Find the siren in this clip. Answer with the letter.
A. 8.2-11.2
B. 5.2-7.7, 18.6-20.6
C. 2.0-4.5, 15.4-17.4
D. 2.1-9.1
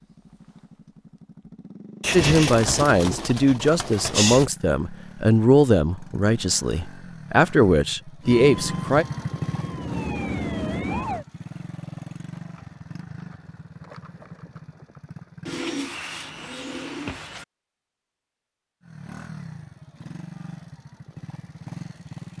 A.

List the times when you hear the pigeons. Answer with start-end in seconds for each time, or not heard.
2.0-4.5, 15.4-17.4.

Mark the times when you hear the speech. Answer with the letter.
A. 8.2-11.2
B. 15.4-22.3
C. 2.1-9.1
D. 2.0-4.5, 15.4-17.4
C.